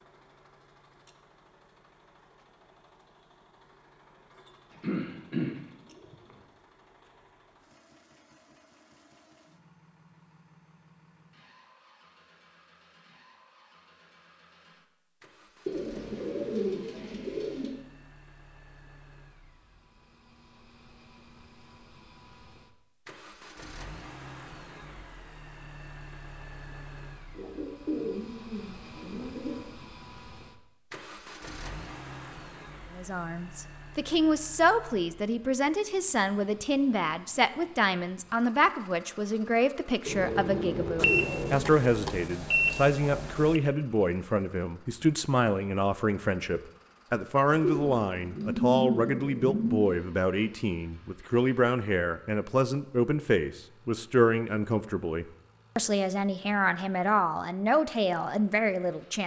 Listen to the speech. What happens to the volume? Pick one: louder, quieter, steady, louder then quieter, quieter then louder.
steady.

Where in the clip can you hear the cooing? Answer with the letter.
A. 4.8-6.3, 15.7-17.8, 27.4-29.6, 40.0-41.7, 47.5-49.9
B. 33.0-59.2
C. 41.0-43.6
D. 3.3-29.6
A.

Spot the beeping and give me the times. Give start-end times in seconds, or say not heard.
41.0-43.6.